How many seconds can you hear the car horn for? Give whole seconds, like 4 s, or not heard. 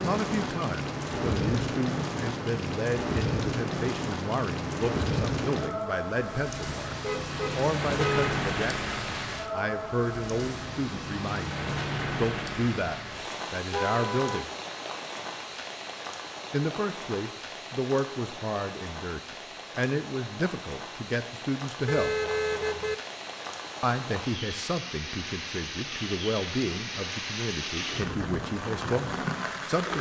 3 s.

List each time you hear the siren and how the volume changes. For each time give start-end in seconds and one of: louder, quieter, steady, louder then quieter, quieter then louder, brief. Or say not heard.
not heard.